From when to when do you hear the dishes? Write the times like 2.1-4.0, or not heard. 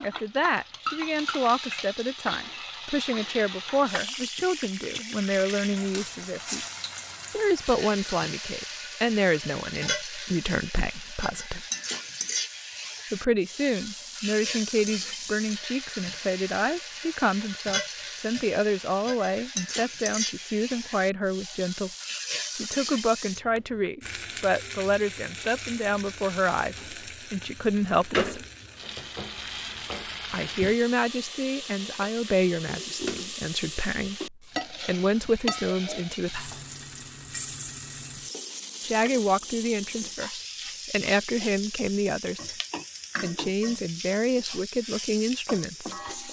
not heard.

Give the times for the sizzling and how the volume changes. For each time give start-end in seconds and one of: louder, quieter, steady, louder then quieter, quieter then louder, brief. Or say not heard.
0.0-46.2 steady.